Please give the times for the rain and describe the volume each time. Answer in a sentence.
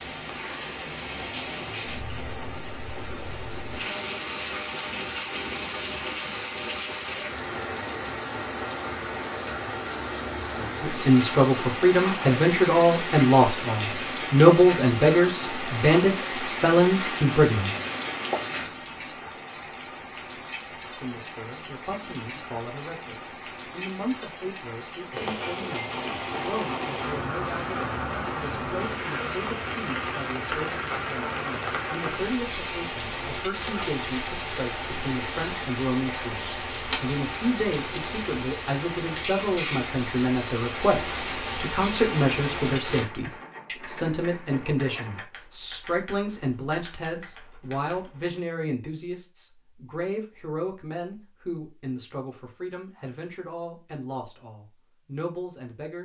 You can hear the rain from 0.0 to 43.0 s, at a steady volume.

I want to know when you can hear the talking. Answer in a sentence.
You can hear the talking from 10.8 to 17.7 s and from 20.9 to 55.9 s.